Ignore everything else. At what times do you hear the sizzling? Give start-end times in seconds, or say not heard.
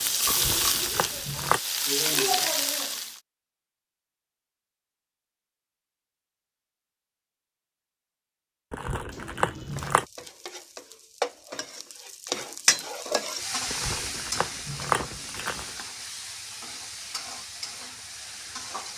0.0-3.2, 9.1-18.9.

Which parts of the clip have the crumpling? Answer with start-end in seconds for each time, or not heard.
0.2-1.6, 8.7-10.1, 13.7-15.9.